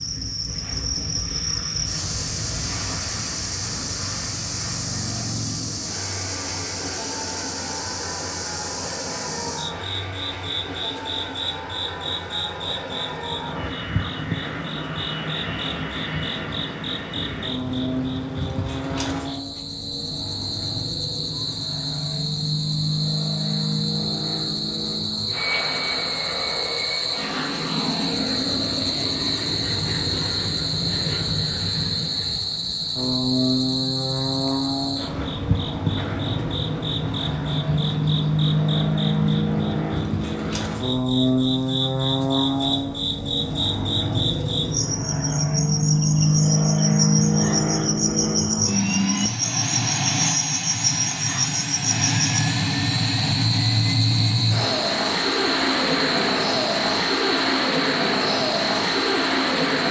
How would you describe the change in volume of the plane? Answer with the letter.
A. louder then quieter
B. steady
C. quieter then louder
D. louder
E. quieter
D.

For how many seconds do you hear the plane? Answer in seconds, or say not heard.
60 s.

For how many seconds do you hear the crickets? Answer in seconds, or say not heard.
60 s.